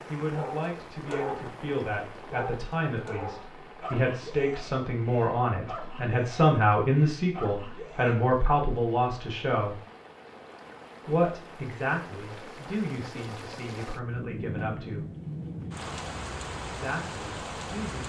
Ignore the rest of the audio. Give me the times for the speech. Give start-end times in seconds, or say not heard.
0.1-9.8, 11.1-15.1, 16.7-18.0.